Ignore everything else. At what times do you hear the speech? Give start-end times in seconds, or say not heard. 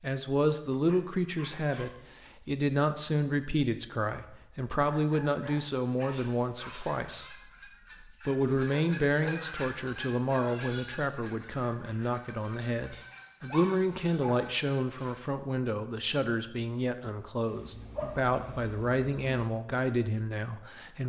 0.0-7.3, 8.2-21.0.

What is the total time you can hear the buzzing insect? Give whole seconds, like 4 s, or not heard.
not heard.